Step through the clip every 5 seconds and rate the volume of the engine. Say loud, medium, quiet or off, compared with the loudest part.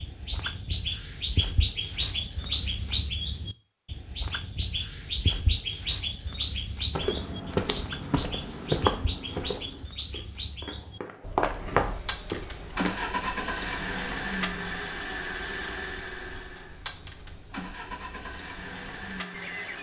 off, off, loud, medium.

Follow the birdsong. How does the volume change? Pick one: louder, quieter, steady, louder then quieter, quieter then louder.
quieter.